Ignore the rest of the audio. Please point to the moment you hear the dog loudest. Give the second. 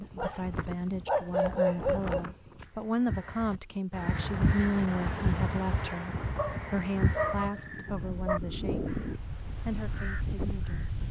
2 s.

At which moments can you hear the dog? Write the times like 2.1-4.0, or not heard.
0.1-2.6, 6.3-8.4.